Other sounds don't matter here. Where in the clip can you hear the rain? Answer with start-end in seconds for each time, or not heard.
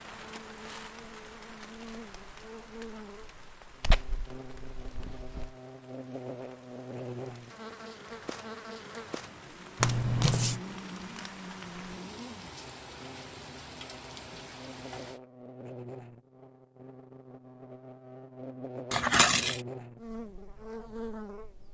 0.0-15.2.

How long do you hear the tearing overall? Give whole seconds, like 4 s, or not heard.
3 s.